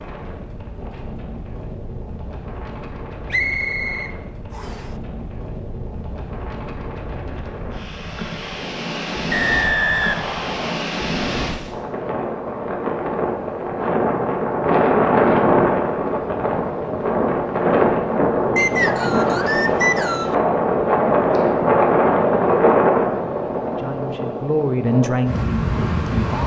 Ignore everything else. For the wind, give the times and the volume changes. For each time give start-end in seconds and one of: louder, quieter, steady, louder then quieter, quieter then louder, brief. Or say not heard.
0.0-26.4 louder.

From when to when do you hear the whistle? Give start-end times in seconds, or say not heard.
3.3-4.8, 9.3-10.8, 18.6-20.4.